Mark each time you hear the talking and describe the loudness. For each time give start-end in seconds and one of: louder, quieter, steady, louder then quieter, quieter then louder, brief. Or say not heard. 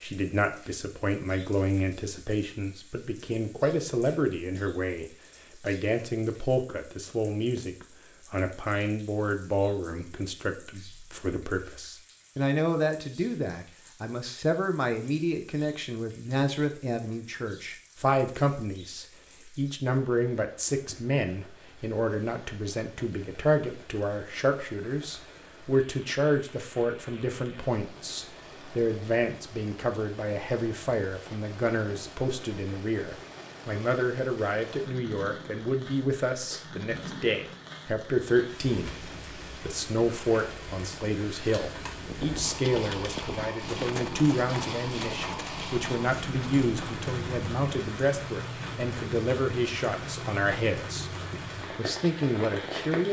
0.0-53.0 steady.